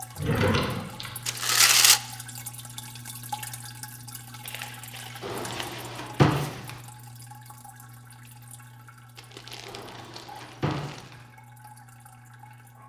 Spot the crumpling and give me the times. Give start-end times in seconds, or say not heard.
1.2-2.0, 4.4-6.7, 9.2-11.1.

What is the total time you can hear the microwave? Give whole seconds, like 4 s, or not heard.
not heard.